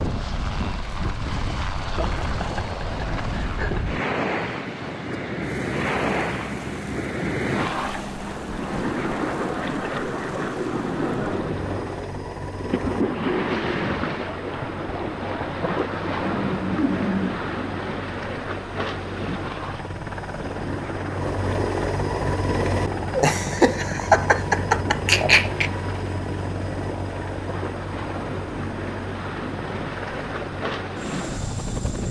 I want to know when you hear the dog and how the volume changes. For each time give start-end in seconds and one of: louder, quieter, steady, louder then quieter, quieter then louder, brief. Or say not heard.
not heard.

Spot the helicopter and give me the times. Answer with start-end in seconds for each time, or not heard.
0.0-32.0.